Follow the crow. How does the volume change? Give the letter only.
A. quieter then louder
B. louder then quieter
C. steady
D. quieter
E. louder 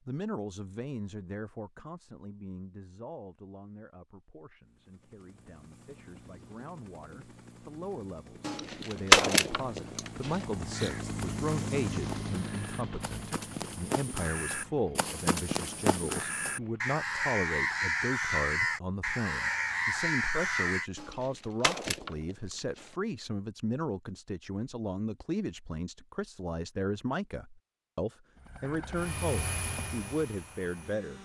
E.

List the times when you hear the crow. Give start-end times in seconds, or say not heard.
10.7-20.9.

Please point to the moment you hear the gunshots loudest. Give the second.
9 s.